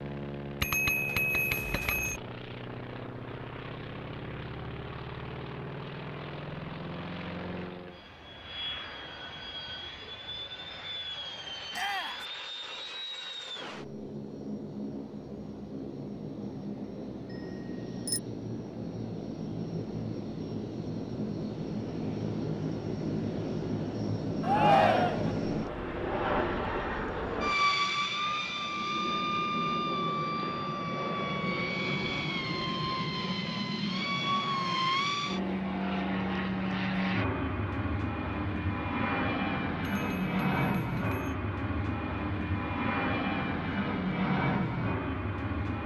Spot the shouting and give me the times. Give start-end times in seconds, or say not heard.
11.7-12.2, 24.4-25.4.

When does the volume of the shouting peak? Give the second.
25 s.